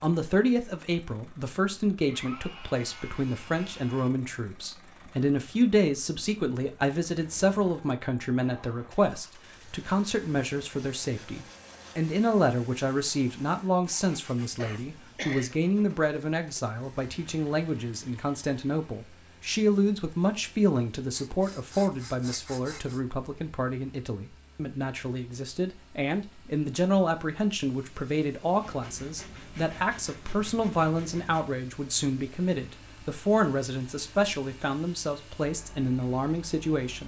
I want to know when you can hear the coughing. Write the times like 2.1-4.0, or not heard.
14.6-15.6.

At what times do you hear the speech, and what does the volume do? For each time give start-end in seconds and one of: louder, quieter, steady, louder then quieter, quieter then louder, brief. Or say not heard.
0.0-37.0 steady.